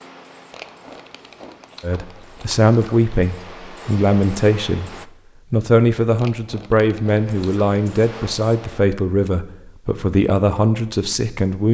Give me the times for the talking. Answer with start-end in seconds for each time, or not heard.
1.8-4.9, 5.5-11.6.